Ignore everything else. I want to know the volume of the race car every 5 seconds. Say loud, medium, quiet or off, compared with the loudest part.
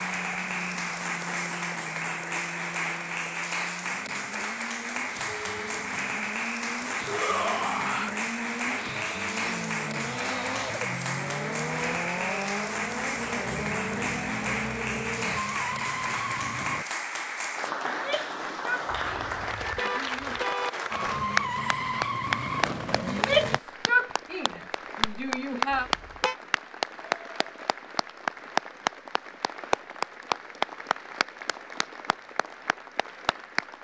medium, medium, loud, loud, loud, off, off.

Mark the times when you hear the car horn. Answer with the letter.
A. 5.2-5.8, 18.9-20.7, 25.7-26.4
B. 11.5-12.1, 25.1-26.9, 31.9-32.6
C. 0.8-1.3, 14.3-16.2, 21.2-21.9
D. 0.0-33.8
A.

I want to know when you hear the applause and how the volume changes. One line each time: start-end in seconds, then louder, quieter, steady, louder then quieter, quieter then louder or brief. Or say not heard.
0.0-33.8 steady.